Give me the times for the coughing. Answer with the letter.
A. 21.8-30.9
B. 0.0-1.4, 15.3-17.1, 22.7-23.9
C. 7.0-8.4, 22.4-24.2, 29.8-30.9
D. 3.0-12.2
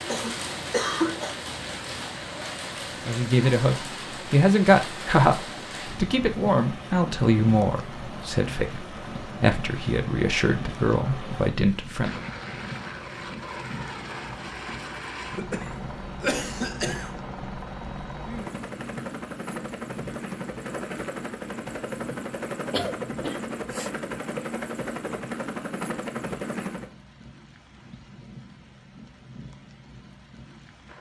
B.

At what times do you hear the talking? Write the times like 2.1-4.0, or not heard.
3.0-12.2.